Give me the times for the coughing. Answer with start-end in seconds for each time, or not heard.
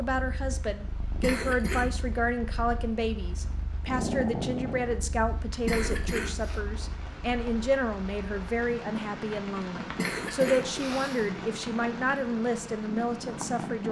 1.2-1.9, 5.7-6.6, 9.9-11.3.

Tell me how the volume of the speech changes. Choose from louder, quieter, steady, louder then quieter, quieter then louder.
steady.